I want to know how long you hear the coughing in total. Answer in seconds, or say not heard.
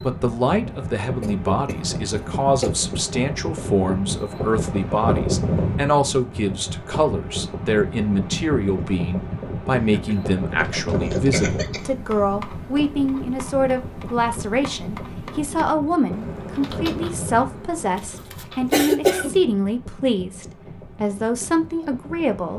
5 s.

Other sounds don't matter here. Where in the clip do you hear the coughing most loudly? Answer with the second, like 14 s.
19 s.